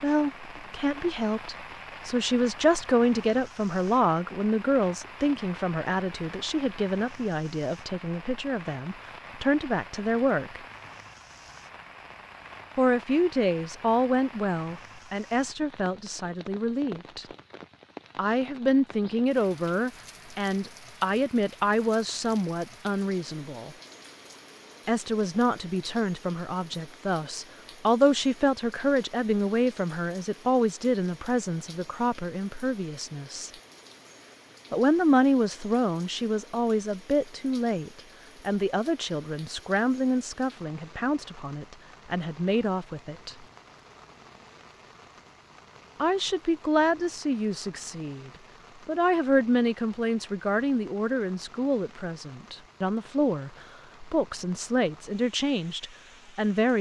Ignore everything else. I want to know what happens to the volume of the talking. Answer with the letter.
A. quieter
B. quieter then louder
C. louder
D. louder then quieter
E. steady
E.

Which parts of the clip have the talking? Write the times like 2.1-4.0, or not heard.
0.0-10.6, 12.8-17.2, 18.1-23.8, 24.9-33.5, 34.7-43.4, 46.0-56.7.